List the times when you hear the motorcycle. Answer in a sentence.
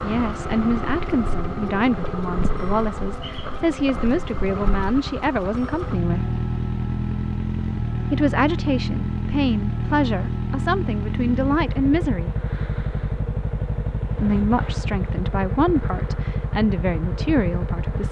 The motorcycle can be heard from 0.0 to 18.0 s.